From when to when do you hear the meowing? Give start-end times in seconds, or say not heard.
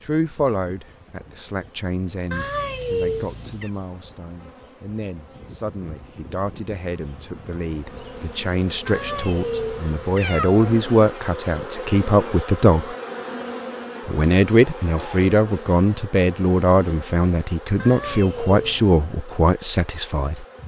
2.3-3.7, 8.8-10.8, 17.8-19.1.